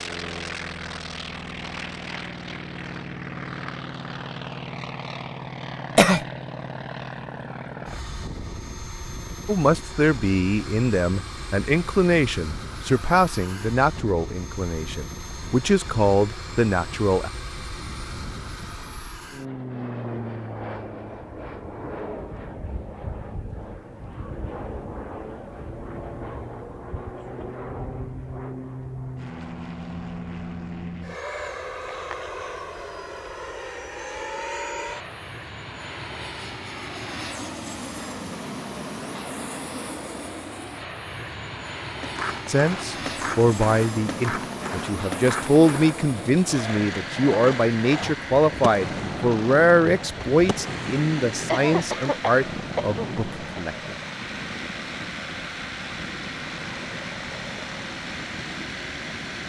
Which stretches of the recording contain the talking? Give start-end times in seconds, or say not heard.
9.4-17.3, 42.5-54.0.